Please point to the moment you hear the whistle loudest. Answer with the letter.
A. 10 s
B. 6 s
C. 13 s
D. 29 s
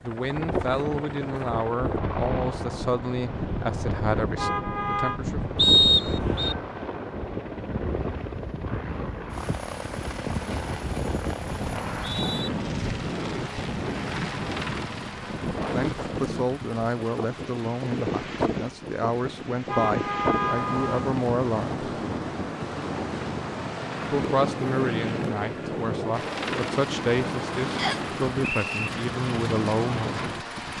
B.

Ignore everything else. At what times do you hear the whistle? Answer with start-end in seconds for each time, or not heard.
5.5-6.5, 11.8-12.5, 27.8-28.9.